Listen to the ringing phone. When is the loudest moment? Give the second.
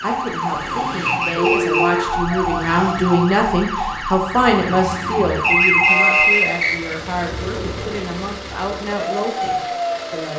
6 s.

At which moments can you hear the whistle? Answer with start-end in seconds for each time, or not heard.
1.1-2.0, 5.4-7.0.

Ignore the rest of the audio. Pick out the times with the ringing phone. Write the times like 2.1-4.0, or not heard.
1.4-3.2, 5.5-6.5.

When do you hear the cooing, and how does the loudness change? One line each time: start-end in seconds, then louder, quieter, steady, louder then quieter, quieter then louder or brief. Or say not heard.
not heard.